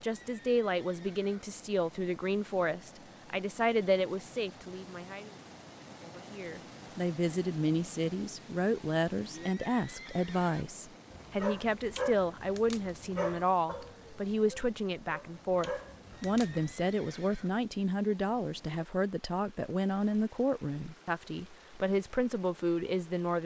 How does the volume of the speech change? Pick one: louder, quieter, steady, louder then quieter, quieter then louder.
steady.